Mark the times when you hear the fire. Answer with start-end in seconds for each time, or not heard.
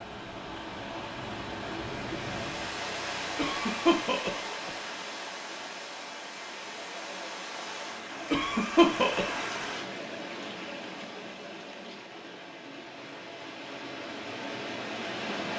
not heard.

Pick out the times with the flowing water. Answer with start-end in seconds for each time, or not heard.
0.0-15.5.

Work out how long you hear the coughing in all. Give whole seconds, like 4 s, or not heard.
3 s.